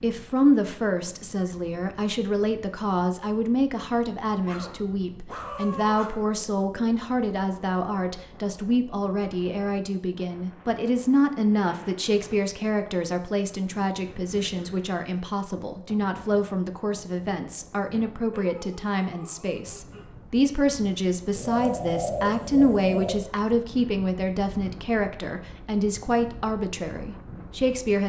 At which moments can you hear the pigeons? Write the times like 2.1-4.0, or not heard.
21.4-23.2.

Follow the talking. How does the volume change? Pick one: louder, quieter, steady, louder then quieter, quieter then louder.
steady.